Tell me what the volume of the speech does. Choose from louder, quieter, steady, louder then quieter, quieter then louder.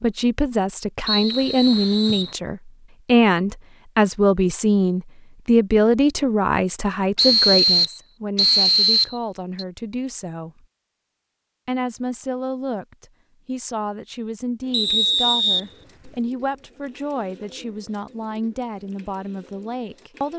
quieter.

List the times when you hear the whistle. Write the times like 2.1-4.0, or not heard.
1.1-2.4, 7.2-9.7, 14.7-16.1.